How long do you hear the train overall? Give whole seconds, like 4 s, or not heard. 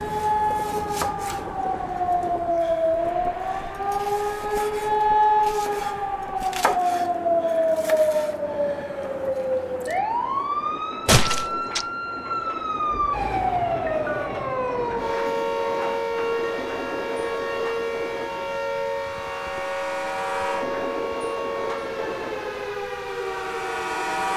24 s.